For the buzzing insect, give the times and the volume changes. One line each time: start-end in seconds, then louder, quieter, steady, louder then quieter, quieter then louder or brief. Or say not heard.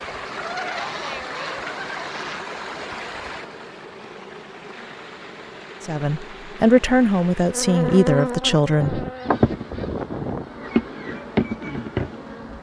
0.0-12.5 louder.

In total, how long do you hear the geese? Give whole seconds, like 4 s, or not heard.
4 s.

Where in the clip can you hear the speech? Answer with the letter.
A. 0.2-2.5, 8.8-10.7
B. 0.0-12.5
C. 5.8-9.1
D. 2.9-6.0
C.